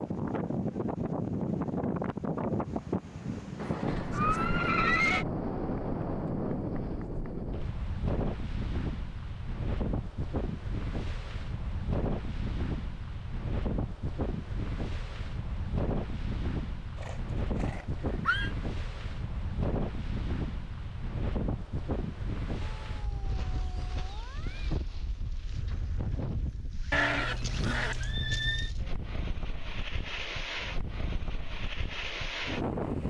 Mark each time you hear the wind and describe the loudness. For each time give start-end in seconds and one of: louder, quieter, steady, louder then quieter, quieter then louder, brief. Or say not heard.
0.0-33.0 quieter.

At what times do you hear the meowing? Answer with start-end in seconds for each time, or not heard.
22.8-24.8.